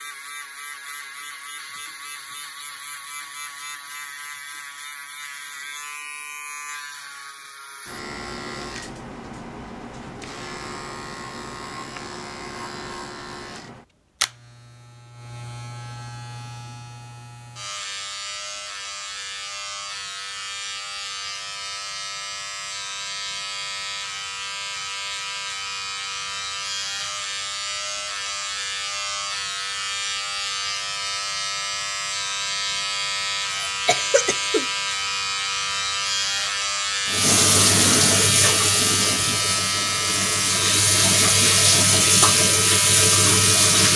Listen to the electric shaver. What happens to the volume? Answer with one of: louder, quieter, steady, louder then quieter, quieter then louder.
louder.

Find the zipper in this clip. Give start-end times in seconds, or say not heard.
not heard.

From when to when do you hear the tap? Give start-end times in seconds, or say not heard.
37.0-43.9.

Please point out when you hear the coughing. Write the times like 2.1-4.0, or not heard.
33.5-35.1.